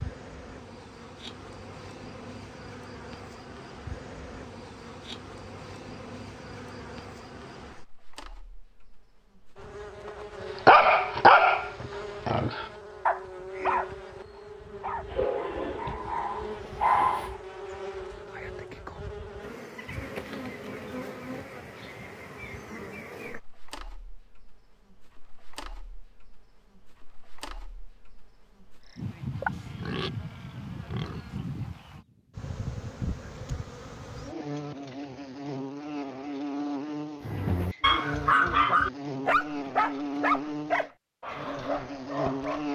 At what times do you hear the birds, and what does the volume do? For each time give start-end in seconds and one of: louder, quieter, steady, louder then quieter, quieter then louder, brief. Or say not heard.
not heard.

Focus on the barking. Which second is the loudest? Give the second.
11 s.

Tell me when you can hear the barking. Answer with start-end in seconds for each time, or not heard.
10.7-17.3, 37.2-42.7.